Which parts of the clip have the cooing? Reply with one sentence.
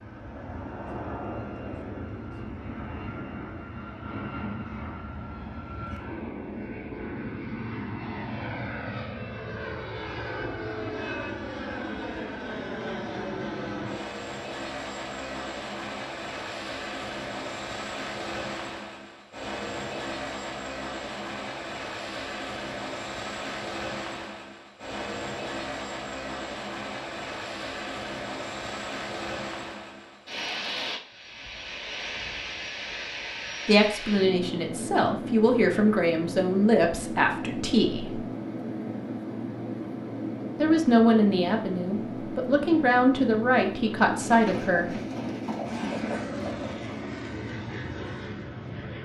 The cooing can be heard from 44.2 to 47.0 s.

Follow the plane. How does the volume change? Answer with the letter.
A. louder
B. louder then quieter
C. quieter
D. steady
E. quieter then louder
D.